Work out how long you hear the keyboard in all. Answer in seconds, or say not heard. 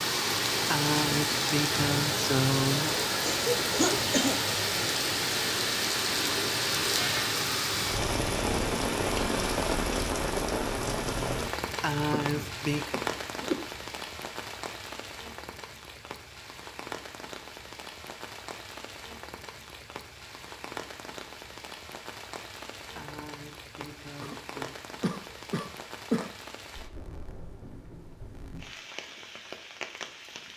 not heard.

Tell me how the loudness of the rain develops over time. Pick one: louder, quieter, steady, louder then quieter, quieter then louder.
quieter.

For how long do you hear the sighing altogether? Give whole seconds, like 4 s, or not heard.
5 s.